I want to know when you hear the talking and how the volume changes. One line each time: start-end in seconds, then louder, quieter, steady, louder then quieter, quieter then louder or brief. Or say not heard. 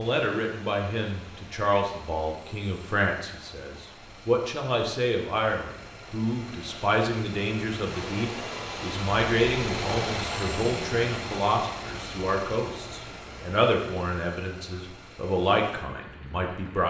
0.0-16.8 steady.